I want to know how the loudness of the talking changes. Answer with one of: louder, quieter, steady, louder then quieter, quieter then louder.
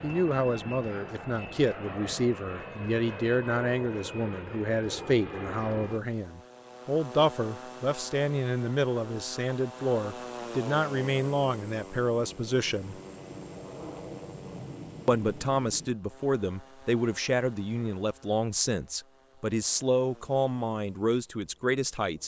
steady.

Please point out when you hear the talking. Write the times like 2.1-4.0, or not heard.
0.0-12.9, 15.1-22.2.